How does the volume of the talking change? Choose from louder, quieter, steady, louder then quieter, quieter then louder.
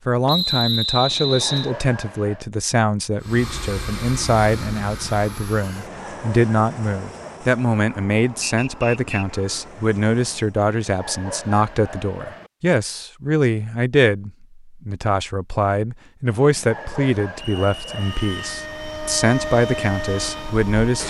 steady.